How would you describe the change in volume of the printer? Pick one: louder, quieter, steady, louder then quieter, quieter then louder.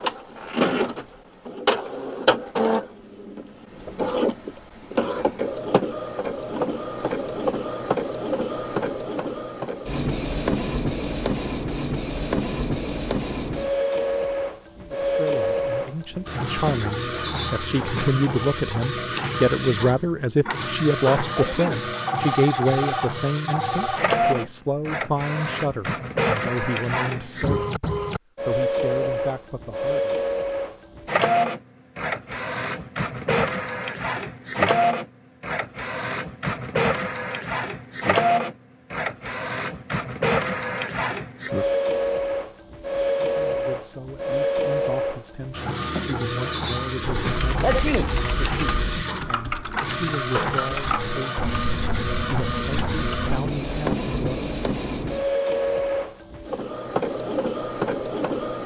steady.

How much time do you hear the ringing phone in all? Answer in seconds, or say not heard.
2 s.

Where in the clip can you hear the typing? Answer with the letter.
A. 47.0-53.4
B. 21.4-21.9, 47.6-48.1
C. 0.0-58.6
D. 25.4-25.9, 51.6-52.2
A.